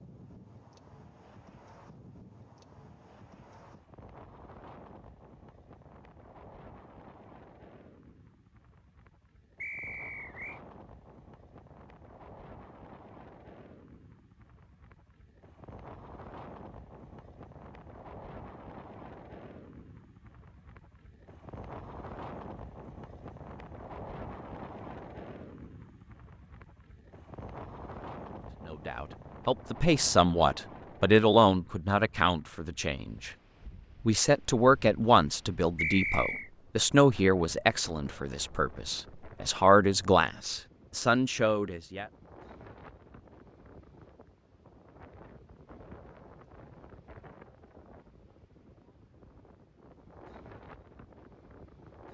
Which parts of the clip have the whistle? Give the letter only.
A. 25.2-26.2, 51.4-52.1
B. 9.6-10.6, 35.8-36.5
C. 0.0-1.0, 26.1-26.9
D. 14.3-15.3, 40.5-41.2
B.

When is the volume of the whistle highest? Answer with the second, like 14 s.
36 s.